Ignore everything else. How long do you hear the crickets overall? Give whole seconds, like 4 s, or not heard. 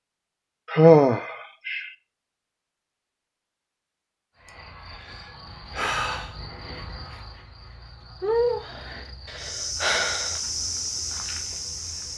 8 s.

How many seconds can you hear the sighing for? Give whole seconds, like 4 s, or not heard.
4 s.